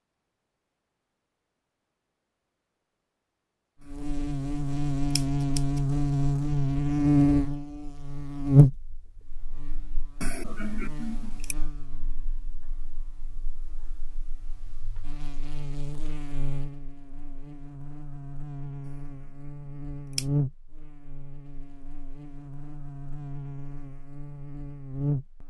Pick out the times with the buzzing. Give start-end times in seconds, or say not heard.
3.9-25.4.